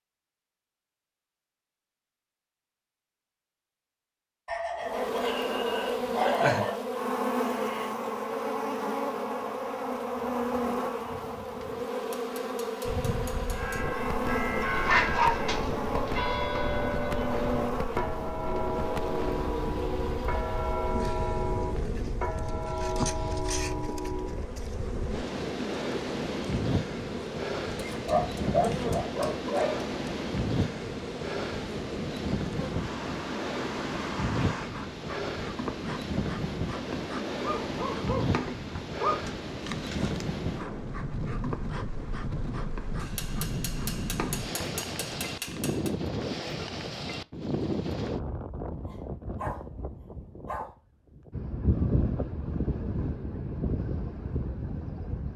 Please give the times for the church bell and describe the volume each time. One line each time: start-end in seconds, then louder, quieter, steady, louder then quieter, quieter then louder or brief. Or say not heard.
13.4-24.4 steady.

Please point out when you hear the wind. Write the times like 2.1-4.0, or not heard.
12.8-55.3.